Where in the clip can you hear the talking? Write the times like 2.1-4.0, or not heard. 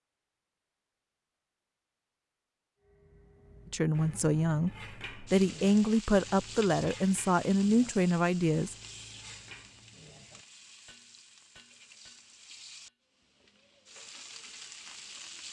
3.7-8.8.